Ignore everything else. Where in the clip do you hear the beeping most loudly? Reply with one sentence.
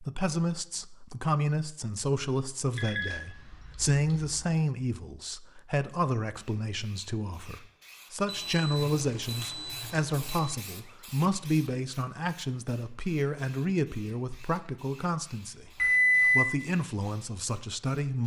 The volume of the beeping peaks at 16 seconds.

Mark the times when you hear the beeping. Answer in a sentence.
You can hear the beeping from 2.8 to 4.3 s, from 8.2 to 10.6 s and from 15.8 to 16.4 s.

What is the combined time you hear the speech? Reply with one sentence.
The speech can be heard for 18 seconds in total.